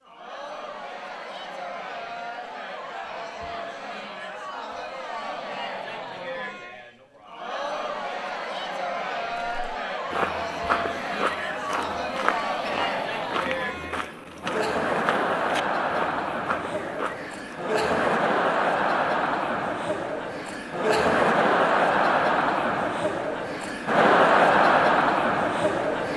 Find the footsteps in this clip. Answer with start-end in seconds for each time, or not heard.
9.3-17.4.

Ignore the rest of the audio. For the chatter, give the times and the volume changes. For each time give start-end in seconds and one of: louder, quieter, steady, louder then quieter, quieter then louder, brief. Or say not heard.
0.0-26.1 louder.